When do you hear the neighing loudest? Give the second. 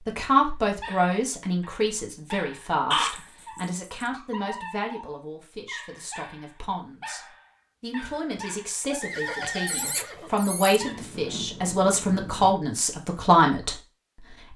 3 s.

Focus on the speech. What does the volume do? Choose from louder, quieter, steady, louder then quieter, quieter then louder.
quieter then louder.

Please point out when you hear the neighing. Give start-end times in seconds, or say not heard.
2.9-4.1, 9.0-10.8.